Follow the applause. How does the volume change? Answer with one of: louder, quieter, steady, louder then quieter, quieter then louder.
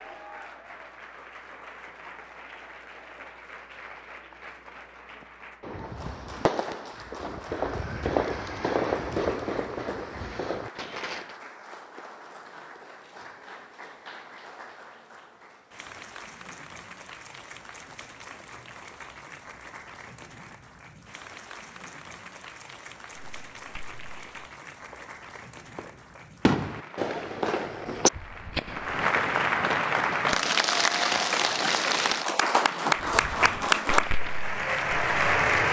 louder.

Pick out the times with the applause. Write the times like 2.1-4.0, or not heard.
0.0-35.6.